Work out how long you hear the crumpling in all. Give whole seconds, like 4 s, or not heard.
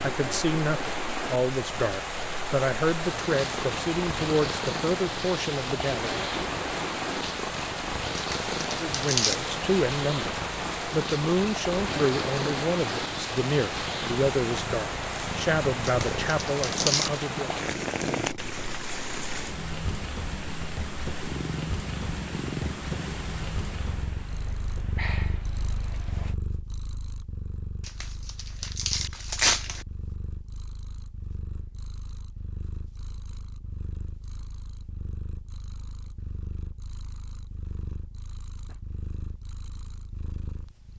5 s.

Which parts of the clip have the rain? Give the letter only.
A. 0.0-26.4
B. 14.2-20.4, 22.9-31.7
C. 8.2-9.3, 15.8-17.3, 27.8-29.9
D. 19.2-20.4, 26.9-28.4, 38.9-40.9
A.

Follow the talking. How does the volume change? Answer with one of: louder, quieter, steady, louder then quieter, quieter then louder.
steady.